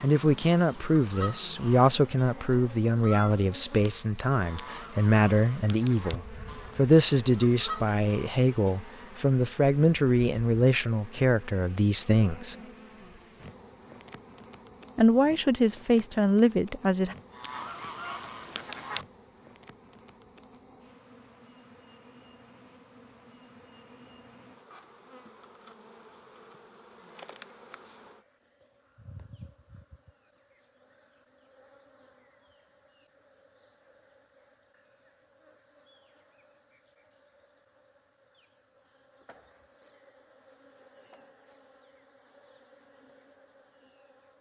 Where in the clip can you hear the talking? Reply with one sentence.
The talking can be heard from 0.0 to 12.6 s and from 14.9 to 17.1 s.